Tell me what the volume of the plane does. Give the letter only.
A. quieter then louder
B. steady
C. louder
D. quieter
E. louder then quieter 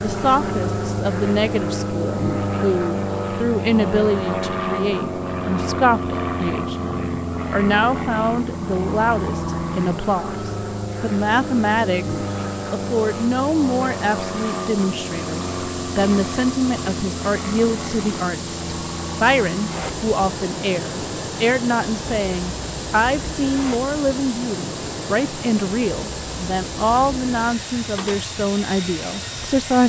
D.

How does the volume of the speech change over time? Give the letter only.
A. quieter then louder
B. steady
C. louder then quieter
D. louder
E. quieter
B.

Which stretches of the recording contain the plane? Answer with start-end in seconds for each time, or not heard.
0.0-29.8.